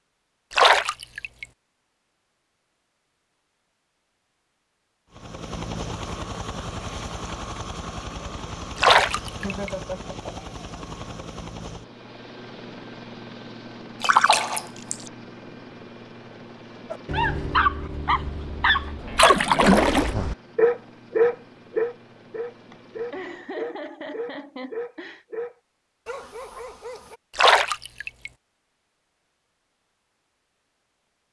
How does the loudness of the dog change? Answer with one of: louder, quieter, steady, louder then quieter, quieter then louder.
quieter.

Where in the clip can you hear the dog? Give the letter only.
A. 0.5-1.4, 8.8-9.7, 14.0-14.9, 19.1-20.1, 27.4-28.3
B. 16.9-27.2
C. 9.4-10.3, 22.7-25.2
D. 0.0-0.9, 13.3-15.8
B.